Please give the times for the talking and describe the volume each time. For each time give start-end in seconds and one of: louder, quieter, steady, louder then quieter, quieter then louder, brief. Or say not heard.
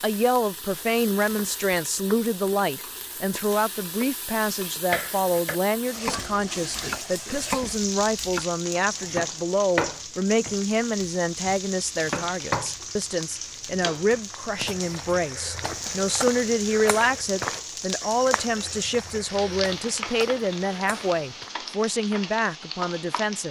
0.0-23.4 steady.